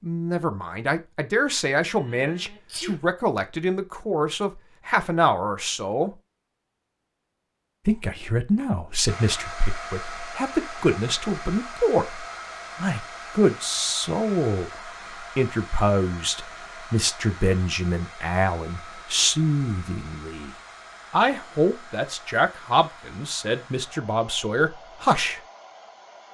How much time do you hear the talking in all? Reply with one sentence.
The talking can be heard for 23 seconds in total.